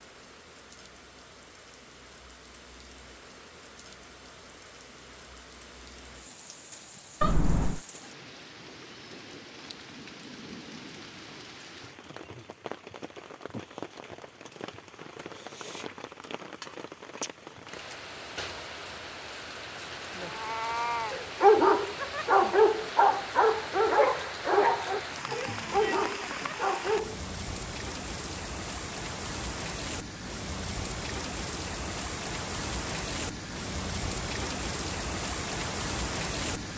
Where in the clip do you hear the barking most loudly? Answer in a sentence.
The volume of the barking peaks at 22 seconds.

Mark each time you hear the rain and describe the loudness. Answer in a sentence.
The rain can be heard from 0.0 to 36.7 s, getting louder.